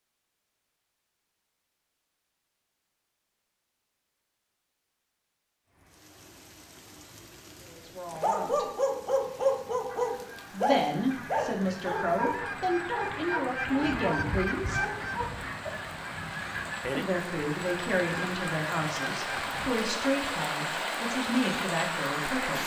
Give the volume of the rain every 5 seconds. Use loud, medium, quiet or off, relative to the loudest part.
off, quiet, quiet, medium, loud.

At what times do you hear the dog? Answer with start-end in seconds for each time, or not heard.
8.1-15.7.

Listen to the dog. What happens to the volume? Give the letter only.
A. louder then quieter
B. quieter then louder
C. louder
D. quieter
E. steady
D.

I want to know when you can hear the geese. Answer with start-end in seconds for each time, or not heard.
9.8-19.8.